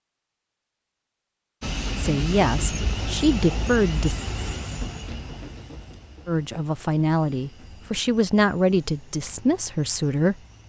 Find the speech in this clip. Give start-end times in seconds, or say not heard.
1.9-4.2, 6.2-10.3.